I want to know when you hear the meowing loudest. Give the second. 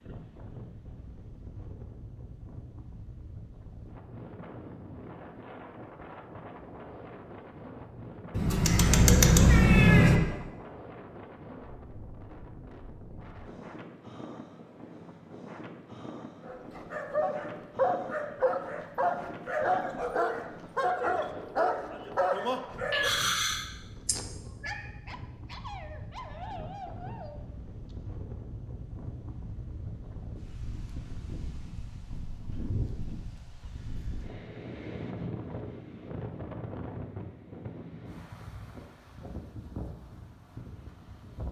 10 s.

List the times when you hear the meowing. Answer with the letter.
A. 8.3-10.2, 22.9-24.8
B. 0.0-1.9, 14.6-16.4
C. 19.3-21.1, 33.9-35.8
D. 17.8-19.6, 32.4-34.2
A.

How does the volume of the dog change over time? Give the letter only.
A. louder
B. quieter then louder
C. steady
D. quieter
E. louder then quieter
D.